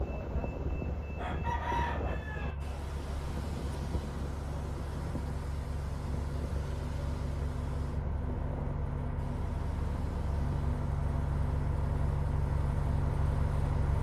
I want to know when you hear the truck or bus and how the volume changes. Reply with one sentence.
You can hear the truck or bus from 0.0 to 13.9 s, getting louder.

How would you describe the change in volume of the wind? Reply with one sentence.
The volume of the wind goes down.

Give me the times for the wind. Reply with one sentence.
The wind can be heard from 0.0 to 13.9 s.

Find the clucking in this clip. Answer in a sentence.
You can hear the clucking from 1.1 to 2.5 s.